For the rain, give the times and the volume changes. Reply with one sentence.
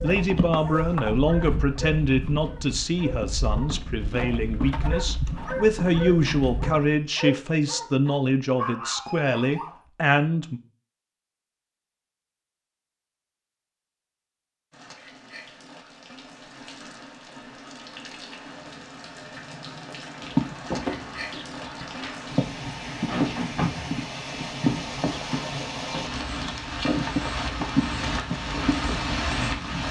You can hear the rain from 14.7 to 29.8 s, getting louder.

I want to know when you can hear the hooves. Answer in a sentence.
You can hear the hooves from 0.0 to 6.8 s and from 20.2 to 29.6 s.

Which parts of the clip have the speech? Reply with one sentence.
You can hear the speech from 0.0 to 10.6 s.